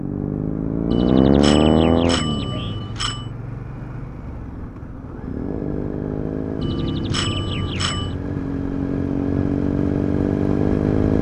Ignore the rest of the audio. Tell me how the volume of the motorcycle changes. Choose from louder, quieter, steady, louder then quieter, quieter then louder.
quieter then louder.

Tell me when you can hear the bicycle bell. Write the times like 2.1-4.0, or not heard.
0.9-3.3, 6.6-8.2.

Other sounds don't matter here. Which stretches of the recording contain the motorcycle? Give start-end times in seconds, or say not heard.
0.0-11.1.